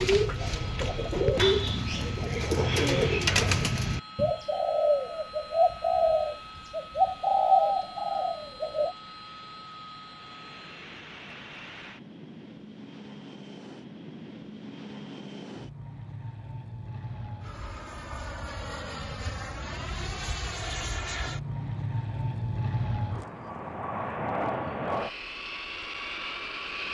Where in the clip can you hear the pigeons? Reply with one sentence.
The pigeons can be heard from 0.0 to 8.9 s.